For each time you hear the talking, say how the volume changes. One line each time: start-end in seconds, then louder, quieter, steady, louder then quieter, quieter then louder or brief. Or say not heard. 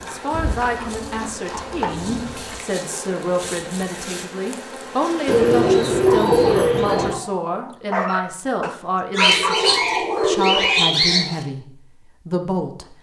0.0-12.9 steady.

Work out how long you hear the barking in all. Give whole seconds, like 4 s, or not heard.
5 s.